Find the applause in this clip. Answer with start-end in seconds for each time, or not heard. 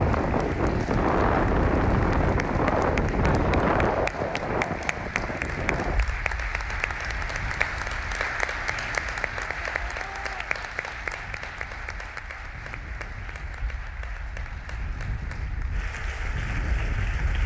0.0-17.4.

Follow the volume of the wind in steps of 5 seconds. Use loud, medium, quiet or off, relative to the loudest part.
loud, quiet, quiet, quiet.